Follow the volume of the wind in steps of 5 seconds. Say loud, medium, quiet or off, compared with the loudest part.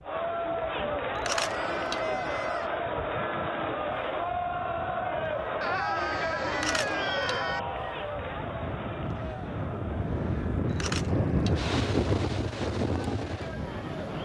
quiet, medium, loud.